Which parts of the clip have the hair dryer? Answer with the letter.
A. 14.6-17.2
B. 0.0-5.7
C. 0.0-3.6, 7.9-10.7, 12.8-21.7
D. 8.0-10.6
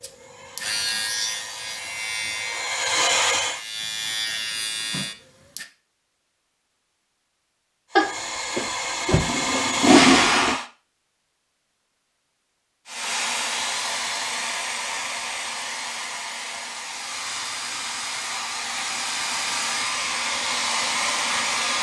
C.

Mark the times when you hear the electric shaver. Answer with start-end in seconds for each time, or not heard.
0.0-5.7.